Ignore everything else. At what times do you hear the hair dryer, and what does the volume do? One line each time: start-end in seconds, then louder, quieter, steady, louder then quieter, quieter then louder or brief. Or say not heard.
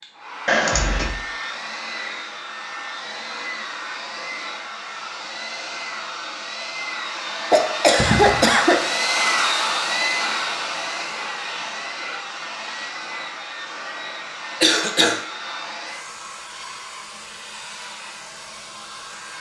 0.0-19.3 louder then quieter.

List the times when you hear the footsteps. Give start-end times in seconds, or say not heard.
not heard.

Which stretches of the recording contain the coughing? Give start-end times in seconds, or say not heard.
0.5-1.2, 7.5-8.8, 14.6-15.2.